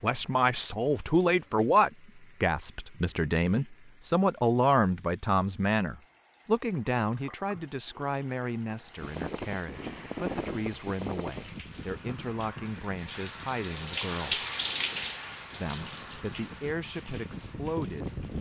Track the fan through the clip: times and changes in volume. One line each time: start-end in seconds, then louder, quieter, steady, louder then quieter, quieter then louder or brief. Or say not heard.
8.8-18.3 quieter then louder.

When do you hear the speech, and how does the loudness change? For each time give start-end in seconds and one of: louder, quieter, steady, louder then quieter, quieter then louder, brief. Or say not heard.
0.0-14.4 quieter
15.6-18.2 brief.